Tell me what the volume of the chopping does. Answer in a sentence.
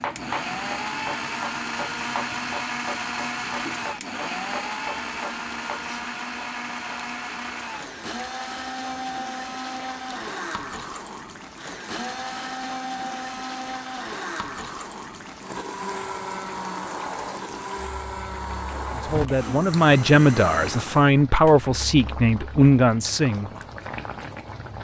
The volume of the chopping stays about the same.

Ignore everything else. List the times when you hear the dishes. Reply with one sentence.
You can't hear the dishes here.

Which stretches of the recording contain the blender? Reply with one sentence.
The blender can be heard from 0.0 to 21.6 s.